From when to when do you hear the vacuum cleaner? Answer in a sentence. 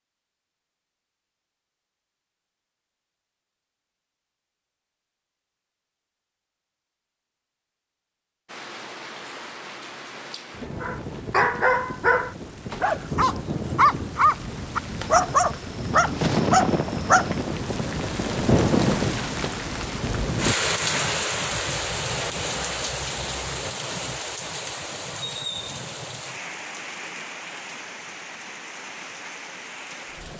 The vacuum cleaner can't be heard in this clip.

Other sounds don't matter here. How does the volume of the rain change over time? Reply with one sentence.
The loudness of the rain goes up, then down.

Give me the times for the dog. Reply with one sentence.
The dog can be heard from 10.8 to 17.4 s.